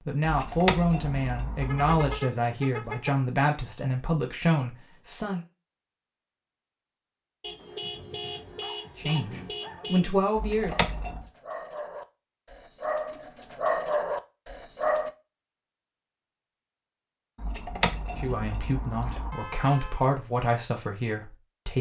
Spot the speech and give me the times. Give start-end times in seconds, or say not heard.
0.0-5.4, 8.9-10.8, 18.1-21.7.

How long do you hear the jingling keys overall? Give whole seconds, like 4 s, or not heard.
5 s.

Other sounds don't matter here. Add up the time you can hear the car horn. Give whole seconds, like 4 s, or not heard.
5 s.